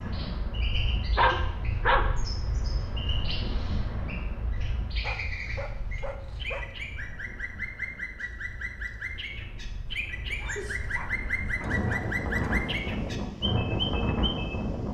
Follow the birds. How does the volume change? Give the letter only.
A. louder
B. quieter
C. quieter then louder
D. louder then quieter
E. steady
A.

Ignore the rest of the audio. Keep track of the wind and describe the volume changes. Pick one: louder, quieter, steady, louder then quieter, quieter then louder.
quieter then louder.